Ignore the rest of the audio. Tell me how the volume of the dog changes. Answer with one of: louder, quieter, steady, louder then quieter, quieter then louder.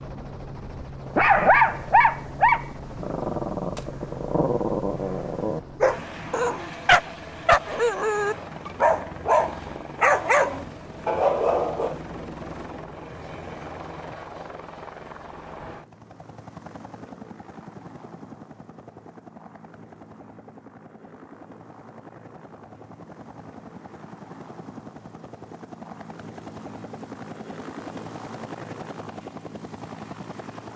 quieter then louder.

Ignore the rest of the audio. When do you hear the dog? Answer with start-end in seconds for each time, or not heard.
1.1-11.9.